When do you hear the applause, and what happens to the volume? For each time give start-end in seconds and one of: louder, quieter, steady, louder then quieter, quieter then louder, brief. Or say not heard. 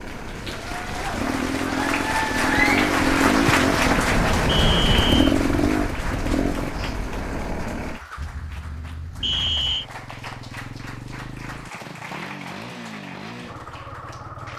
0.0-14.5 quieter.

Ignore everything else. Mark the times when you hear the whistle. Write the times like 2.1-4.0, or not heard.
4.5-5.2, 9.2-9.8.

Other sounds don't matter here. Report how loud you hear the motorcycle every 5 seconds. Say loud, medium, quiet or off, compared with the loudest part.
loud, loud, quiet.